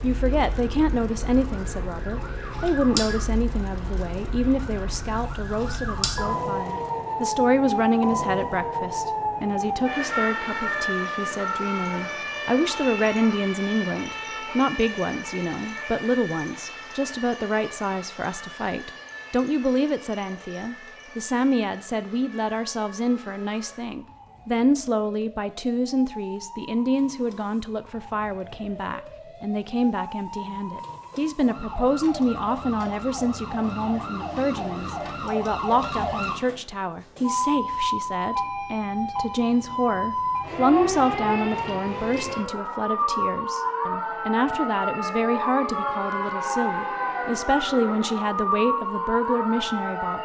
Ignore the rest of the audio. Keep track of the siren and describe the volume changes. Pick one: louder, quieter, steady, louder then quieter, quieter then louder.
quieter then louder.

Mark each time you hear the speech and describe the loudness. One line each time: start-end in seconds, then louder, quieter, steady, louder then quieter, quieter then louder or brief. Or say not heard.
0.0-50.2 steady.